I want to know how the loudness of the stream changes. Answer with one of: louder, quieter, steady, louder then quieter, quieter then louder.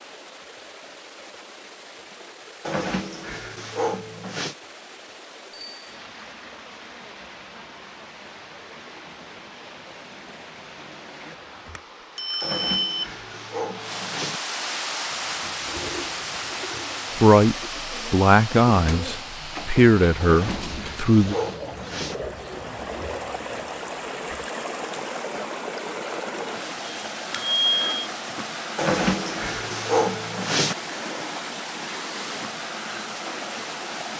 louder.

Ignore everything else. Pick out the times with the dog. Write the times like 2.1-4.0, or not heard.
2.6-4.5, 12.4-14.4, 20.2-22.1, 28.8-30.8.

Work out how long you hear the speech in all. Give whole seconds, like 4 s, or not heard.
4 s.